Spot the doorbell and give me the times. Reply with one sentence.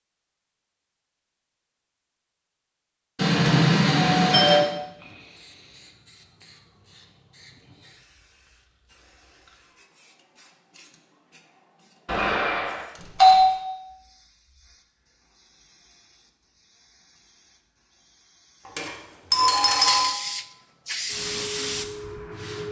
The doorbell can be heard from 3.1 to 4.7 s, from 12.1 to 13.6 s and from 18.8 to 20.1 s.